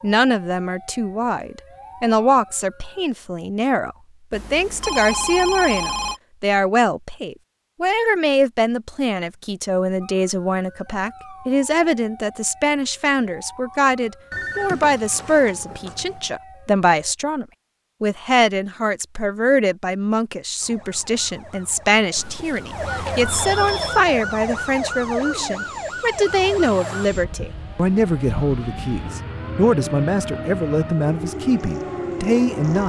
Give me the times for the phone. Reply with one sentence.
You can hear the phone from 4.3 to 6.2 s, from 14.3 to 16.3 s and from 22.1 to 24.1 s.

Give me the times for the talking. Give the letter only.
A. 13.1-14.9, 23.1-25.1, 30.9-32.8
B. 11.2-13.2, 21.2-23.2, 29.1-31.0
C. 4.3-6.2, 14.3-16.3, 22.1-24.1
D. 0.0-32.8
D.